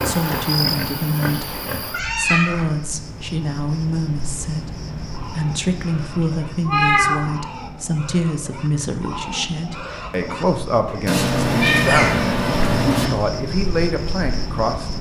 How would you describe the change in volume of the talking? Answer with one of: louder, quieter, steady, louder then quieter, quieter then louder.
steady.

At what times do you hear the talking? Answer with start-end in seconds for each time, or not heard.
0.0-14.9.